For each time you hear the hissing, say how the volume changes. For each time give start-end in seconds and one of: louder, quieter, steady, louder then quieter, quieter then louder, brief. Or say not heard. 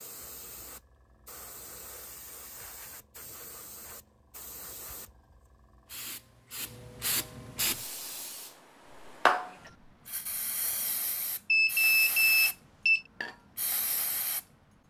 0.0-14.4 louder then quieter.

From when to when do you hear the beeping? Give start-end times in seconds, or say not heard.
11.5-13.0.